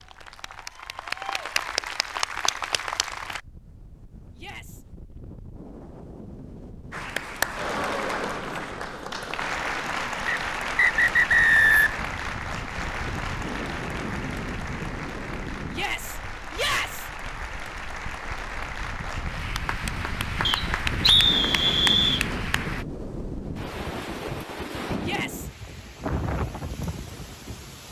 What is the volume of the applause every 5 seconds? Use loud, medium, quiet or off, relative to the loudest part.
loud, loud, loud, medium, loud, off.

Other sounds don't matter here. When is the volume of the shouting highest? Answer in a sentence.
The loudest moment of the shouting is at 17 seconds.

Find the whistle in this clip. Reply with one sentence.
The whistle can be heard from 10.2 to 12.0 s and from 20.4 to 22.2 s.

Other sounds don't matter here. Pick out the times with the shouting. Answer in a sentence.
The shouting can be heard from 4.3 to 4.8 s, from 15.7 to 17.1 s and from 25.0 to 25.5 s.